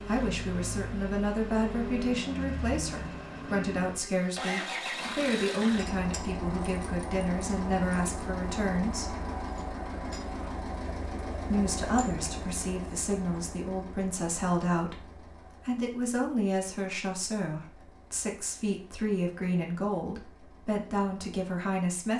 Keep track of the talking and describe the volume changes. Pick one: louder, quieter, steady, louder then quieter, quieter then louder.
steady.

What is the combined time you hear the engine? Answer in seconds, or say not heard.
22 s.